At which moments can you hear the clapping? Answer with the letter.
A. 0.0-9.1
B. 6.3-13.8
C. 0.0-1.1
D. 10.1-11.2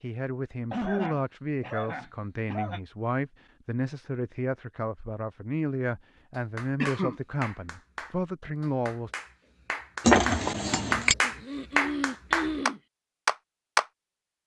B.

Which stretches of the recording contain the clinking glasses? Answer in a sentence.
The clinking glasses can be heard from 10.1 to 11.2 s.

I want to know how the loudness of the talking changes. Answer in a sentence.
The loudness of the talking stays about the same.